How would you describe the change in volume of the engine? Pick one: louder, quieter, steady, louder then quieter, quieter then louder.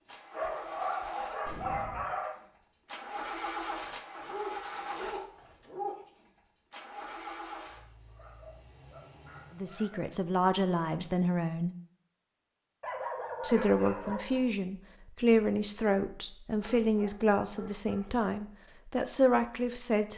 louder then quieter.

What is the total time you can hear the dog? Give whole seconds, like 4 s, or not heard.
9 s.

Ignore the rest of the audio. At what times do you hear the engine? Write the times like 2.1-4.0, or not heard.
0.0-9.8.